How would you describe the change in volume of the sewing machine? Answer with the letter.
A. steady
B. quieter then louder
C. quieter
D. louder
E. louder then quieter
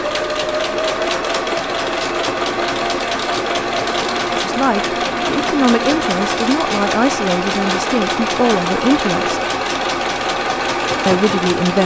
A.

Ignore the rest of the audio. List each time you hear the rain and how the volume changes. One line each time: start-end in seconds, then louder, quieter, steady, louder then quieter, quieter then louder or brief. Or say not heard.
not heard.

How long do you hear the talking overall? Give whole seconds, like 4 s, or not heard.
6 s.